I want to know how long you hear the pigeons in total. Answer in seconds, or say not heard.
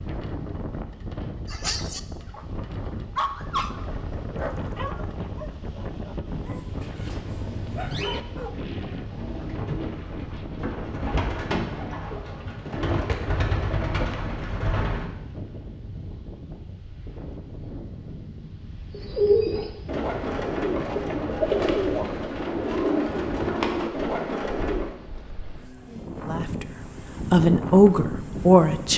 12 s.